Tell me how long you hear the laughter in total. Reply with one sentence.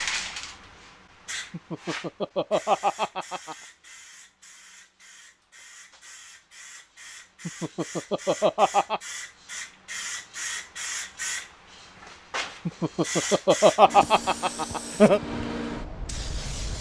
You can hear the laughter for 6 seconds altogether.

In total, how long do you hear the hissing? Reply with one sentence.
You can hear the hissing for 17 seconds altogether.